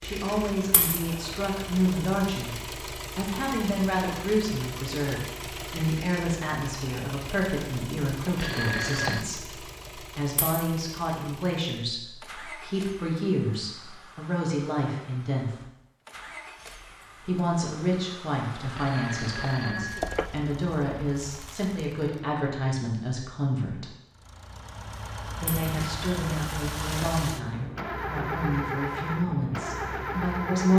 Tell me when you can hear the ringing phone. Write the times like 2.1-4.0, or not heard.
8.2-9.2, 18.6-20.3.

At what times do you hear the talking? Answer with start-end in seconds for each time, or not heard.
0.0-2.5, 3.1-15.6, 17.2-23.9, 25.4-30.7.